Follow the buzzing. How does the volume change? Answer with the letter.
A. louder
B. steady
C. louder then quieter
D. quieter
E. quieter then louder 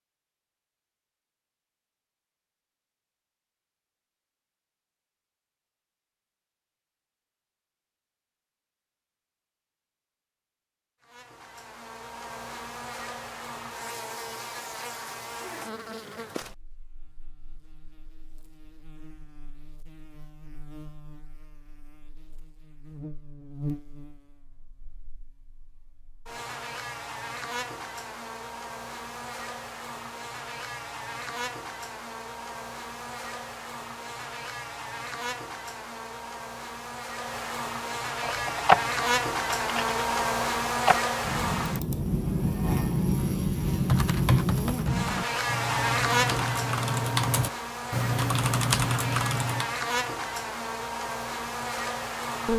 A.